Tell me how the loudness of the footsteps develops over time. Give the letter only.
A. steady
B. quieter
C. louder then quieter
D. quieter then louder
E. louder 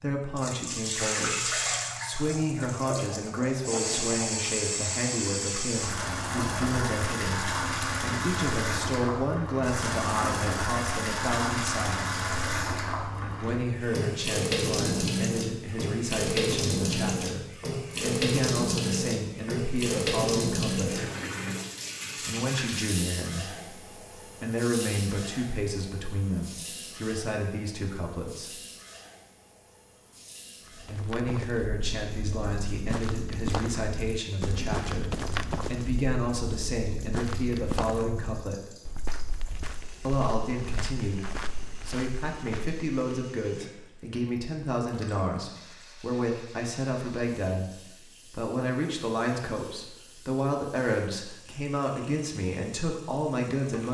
C.